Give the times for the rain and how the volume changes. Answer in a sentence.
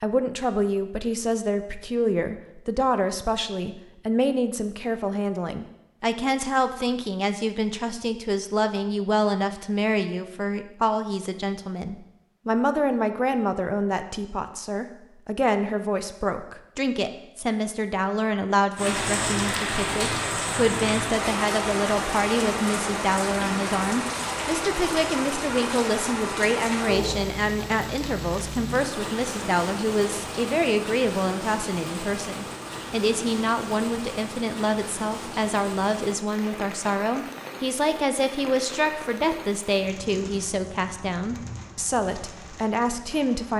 You can hear the rain from 18.8 to 43.5 s, getting quieter.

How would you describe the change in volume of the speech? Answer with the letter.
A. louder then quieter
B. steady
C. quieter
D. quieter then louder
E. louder
B.